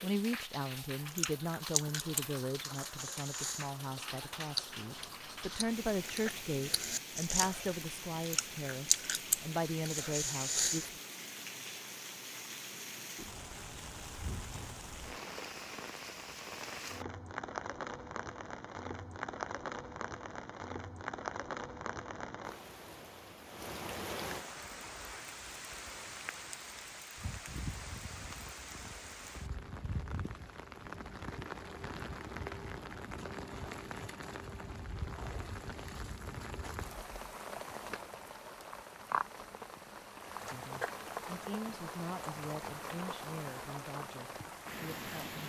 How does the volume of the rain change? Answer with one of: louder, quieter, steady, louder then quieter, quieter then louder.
steady.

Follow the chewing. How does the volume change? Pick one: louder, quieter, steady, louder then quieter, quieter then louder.
quieter then louder.